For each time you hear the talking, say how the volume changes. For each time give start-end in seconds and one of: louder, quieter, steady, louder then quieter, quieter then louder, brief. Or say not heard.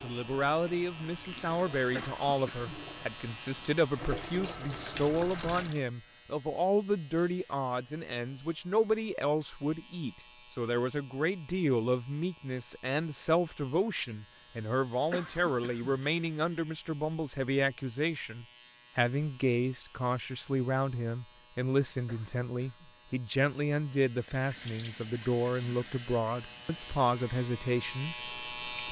0.0-28.8 steady.